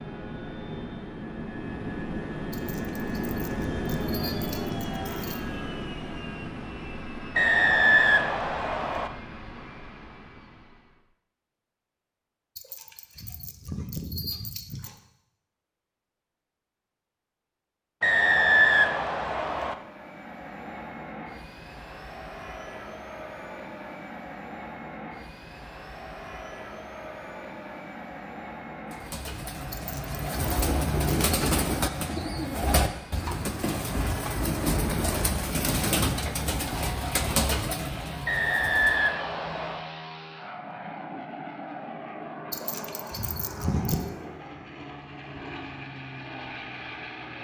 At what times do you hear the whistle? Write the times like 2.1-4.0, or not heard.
7.3-9.1, 18.0-19.8, 38.2-39.9.